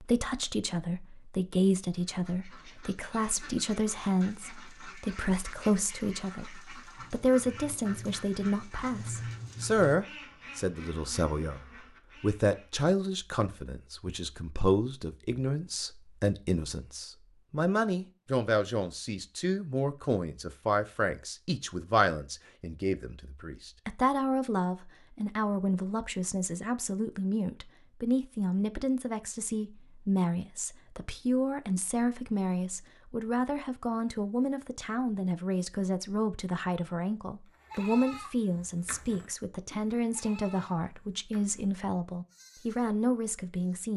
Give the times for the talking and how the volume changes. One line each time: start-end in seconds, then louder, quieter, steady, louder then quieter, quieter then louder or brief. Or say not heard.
0.0-43.9 steady.